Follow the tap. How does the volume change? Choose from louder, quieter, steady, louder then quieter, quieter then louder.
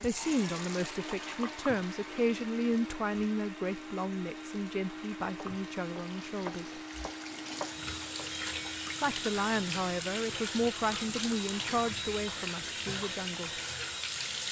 quieter then louder.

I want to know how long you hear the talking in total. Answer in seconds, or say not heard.
11 s.